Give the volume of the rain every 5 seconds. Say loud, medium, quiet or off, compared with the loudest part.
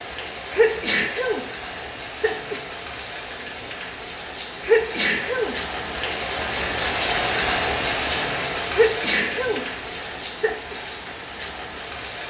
medium, loud, medium.